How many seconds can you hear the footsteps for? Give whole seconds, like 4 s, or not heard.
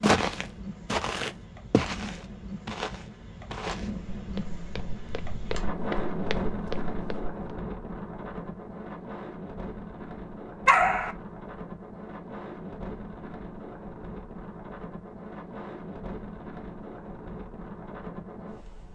7 s.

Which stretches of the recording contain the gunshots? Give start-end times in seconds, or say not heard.
not heard.